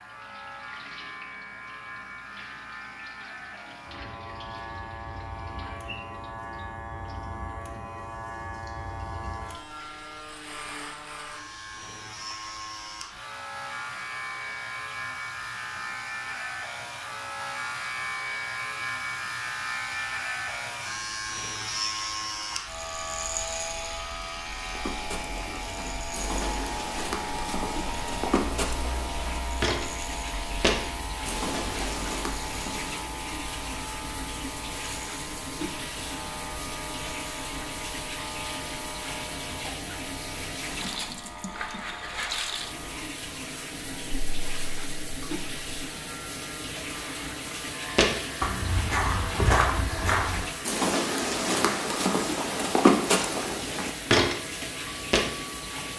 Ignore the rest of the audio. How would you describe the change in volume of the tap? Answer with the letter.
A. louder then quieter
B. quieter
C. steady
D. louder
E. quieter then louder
D.